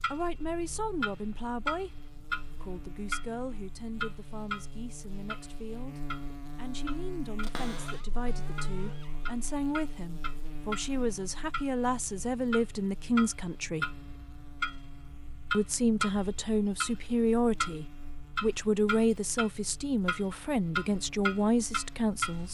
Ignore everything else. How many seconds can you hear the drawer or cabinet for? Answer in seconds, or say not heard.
2 s.